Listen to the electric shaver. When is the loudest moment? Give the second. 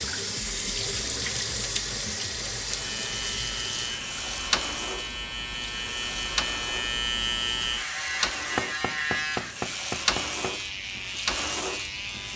7 s.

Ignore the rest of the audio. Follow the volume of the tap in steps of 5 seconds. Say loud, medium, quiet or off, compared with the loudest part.
loud, medium, loud.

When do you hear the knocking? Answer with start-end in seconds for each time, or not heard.
8.6-10.6.